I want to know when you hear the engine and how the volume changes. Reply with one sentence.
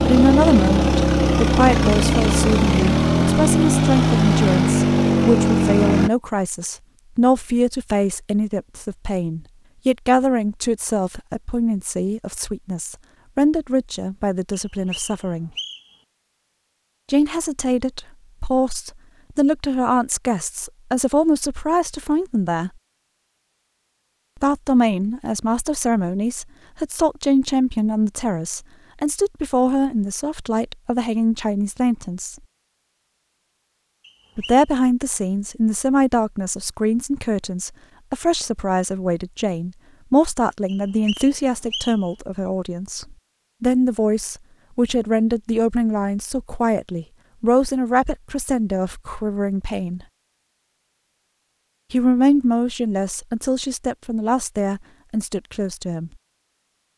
You can hear the engine from 0.0 to 6.1 s, at a steady volume.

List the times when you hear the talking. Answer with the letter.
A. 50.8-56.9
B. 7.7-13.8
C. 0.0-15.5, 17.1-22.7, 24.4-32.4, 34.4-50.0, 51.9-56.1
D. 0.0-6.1
C.